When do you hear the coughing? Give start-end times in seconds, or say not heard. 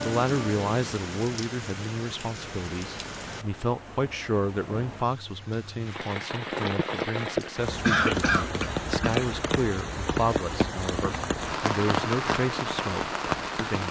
7.4-9.2.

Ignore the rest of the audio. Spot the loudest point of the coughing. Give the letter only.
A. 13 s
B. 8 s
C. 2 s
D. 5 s
B.